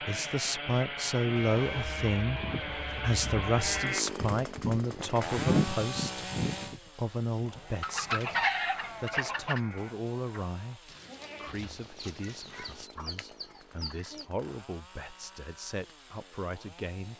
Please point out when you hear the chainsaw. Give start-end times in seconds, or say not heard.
0.0-17.1.